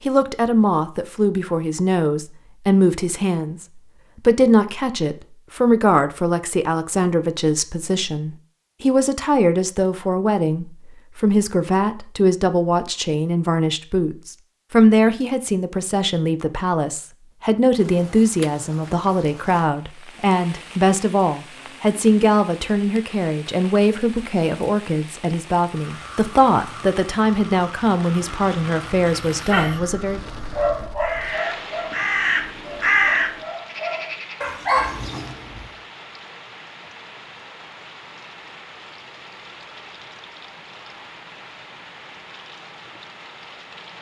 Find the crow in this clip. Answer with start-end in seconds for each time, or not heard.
25.6-35.8.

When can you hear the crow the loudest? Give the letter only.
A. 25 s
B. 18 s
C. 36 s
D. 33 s
D.